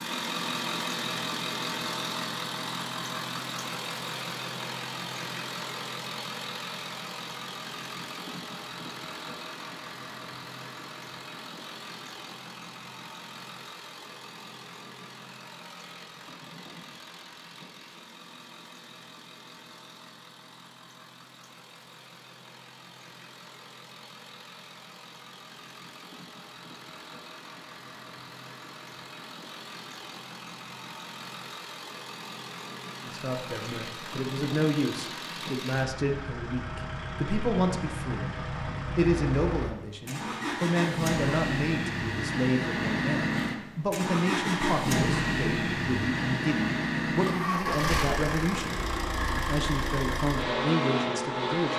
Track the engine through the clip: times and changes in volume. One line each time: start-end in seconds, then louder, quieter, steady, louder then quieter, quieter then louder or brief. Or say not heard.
0.0-51.7 quieter then louder.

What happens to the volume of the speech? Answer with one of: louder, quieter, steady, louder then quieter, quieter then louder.
steady.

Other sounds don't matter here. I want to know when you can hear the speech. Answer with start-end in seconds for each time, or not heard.
33.0-38.4, 39.0-51.7.